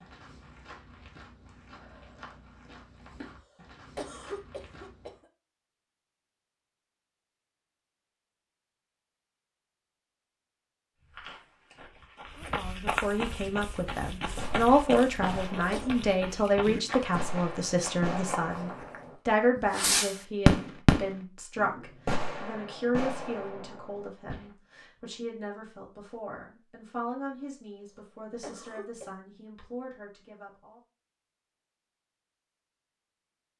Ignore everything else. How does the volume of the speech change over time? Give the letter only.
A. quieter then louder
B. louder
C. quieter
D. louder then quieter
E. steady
C.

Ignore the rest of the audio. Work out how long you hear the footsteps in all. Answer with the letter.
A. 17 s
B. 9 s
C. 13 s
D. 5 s
C.